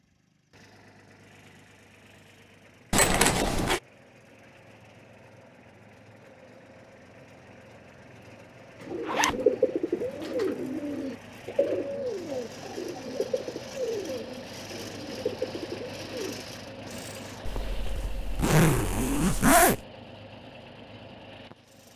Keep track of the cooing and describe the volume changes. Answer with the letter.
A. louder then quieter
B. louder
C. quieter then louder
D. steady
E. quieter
E.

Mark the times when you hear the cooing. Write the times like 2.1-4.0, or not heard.
8.8-16.4.